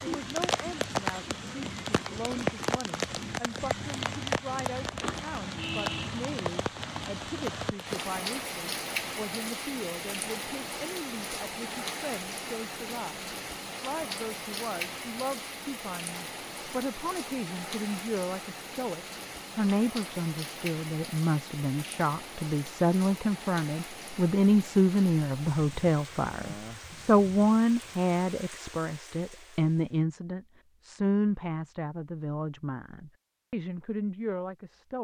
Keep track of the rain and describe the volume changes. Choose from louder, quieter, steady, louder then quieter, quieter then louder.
quieter.